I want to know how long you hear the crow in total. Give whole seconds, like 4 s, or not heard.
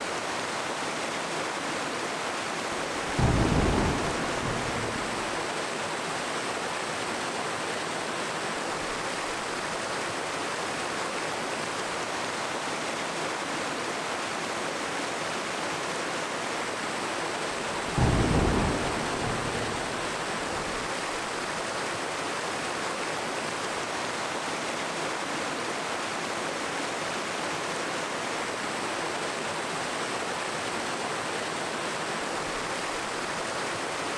not heard.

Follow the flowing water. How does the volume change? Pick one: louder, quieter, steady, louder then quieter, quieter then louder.
steady.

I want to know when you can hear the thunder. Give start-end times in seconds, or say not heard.
3.0-5.5, 17.8-20.8.